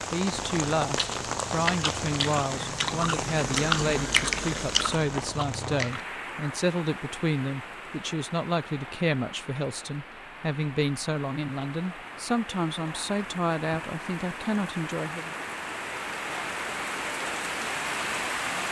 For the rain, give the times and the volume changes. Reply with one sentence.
The rain can be heard from 0.0 to 18.6 s, getting quieter then louder.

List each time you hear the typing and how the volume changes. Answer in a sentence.
The typing can't be heard in this clip.